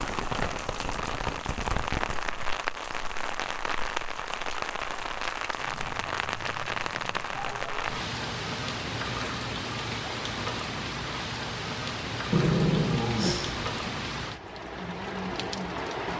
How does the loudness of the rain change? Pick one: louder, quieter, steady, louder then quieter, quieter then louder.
steady.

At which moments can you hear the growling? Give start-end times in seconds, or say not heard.
12.3-13.7.